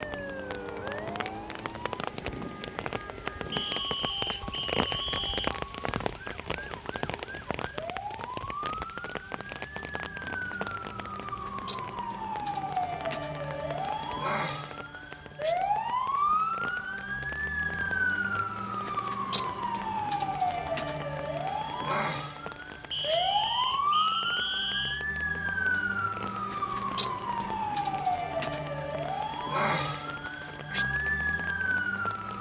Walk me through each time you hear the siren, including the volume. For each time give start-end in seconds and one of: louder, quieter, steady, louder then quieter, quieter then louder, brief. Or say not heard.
0.0-32.3 louder.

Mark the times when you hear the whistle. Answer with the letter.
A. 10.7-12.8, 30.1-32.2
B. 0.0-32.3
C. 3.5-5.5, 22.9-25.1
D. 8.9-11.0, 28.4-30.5
C.